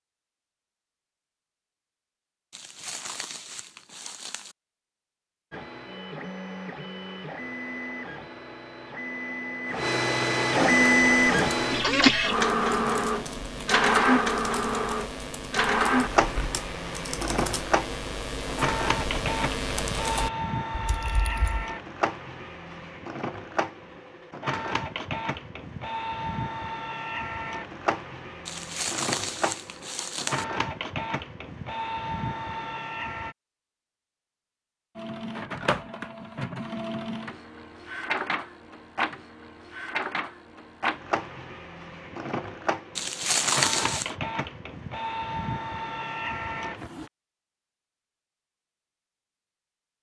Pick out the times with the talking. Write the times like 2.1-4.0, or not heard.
not heard.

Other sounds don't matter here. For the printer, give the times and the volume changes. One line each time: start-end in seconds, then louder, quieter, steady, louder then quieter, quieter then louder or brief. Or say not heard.
5.5-33.4 quieter
35.0-47.1 steady.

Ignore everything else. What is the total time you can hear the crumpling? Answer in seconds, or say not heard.
5 s.